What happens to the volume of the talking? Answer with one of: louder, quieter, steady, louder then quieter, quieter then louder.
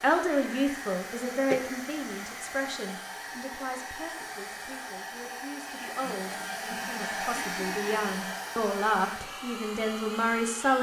quieter then louder.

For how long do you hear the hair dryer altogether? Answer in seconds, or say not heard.
11 s.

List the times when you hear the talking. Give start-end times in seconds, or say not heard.
0.0-10.7.